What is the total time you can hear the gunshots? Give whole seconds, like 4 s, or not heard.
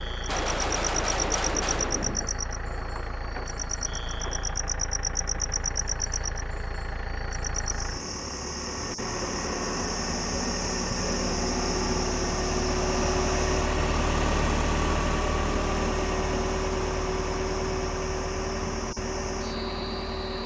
2 s.